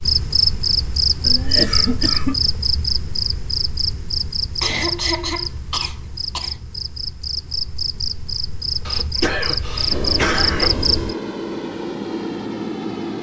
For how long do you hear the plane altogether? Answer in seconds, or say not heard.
3 s.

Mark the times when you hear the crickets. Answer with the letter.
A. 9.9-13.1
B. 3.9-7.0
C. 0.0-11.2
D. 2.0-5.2
C.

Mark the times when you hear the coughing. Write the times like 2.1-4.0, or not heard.
1.2-2.5, 4.6-6.5, 8.8-10.8.